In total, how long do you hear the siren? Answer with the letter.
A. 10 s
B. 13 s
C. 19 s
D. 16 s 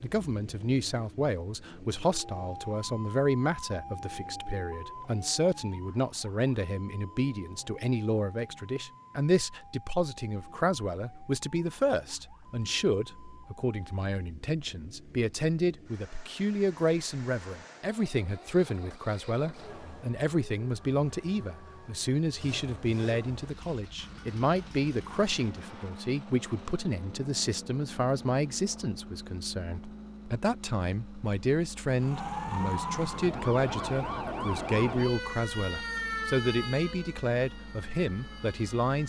C.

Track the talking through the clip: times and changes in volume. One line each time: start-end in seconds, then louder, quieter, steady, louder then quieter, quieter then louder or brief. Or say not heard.
0.0-39.0 steady.